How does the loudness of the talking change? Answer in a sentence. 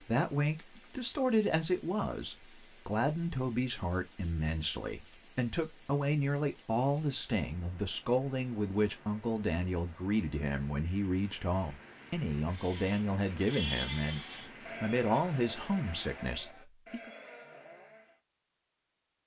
The volume of the talking stays about the same.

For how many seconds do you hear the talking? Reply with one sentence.
You can hear the talking for 17 seconds altogether.